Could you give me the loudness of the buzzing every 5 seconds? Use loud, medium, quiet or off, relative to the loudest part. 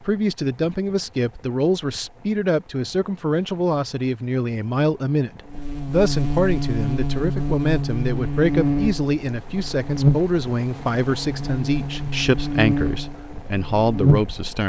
off, loud, loud.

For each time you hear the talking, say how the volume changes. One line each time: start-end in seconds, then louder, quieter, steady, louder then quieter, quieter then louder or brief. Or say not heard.
0.0-14.6 steady.